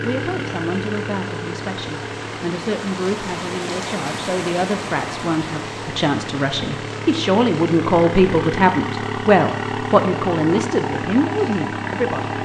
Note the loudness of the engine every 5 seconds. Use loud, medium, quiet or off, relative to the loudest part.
medium, loud, loud.